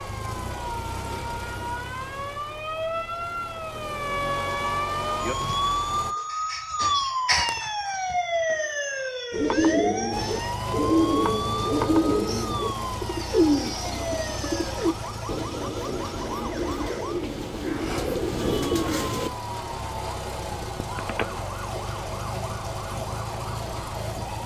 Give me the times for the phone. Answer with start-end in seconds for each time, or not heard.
20.8-21.3.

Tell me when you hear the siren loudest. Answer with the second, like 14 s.
7 s.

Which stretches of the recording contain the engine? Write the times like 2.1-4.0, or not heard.
0.0-6.2, 10.1-24.4.